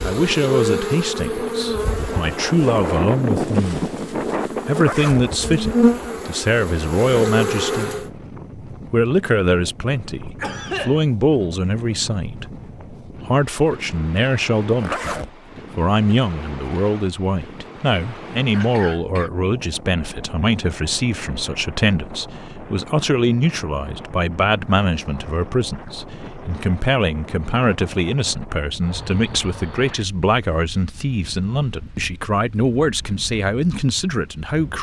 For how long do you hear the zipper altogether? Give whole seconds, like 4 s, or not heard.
2 s.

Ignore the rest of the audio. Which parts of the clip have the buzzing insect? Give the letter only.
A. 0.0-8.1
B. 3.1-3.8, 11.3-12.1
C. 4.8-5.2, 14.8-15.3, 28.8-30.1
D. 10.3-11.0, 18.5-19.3
A.